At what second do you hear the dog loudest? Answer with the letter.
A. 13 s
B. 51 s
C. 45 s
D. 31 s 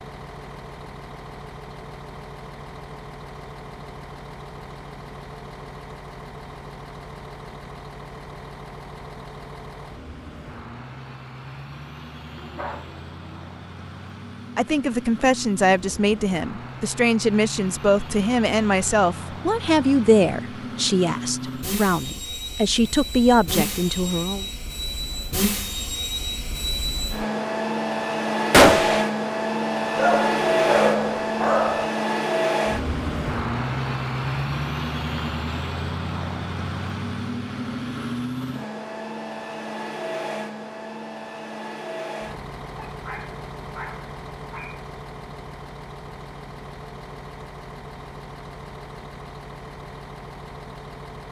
D.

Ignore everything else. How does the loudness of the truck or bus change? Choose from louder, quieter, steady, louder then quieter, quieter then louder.
louder then quieter.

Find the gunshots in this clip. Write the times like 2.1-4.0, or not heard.
28.5-29.1.